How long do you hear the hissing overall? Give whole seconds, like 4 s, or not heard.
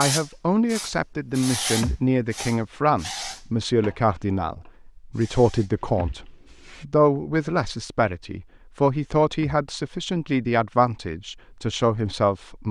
7 s.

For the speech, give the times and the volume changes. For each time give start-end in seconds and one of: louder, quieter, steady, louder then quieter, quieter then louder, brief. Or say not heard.
0.0-12.6 steady.